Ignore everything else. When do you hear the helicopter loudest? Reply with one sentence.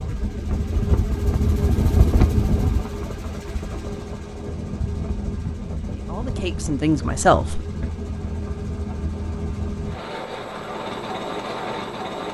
The loudest moment of the helicopter is at 2 seconds.